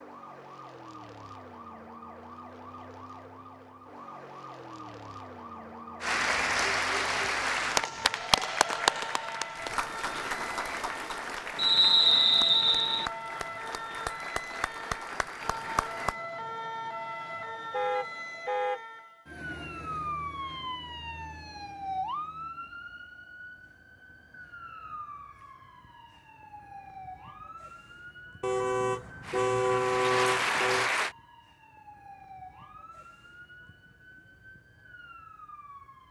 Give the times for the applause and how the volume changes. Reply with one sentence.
The applause can be heard from 6.0 to 16.1 s, getting quieter; and briefly from 29.2 to 31.1 s.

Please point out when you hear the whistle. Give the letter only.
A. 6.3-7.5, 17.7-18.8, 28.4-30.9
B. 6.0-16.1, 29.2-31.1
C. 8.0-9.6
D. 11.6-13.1
D.